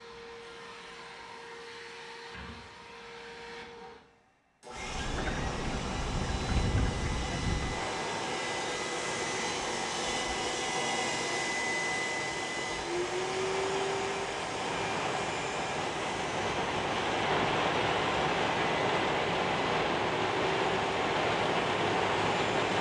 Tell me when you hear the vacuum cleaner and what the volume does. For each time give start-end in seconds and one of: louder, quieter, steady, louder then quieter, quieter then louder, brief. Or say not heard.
0.0-22.7 louder then quieter.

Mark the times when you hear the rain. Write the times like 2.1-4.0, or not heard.
4.8-22.7.